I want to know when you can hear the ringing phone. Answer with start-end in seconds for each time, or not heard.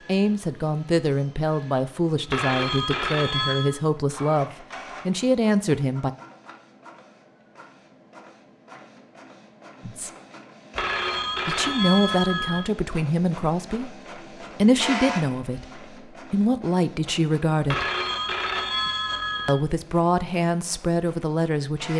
2.2-3.8, 10.8-12.6, 17.6-19.6.